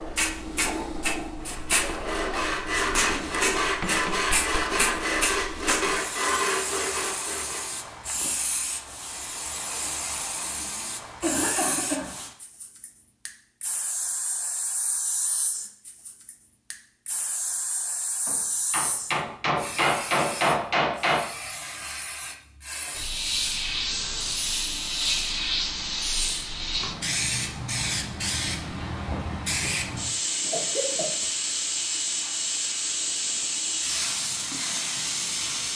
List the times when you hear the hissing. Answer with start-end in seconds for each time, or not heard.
0.0-35.7.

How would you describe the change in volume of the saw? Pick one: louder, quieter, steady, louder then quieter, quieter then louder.
steady.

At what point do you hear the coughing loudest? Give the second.
11 s.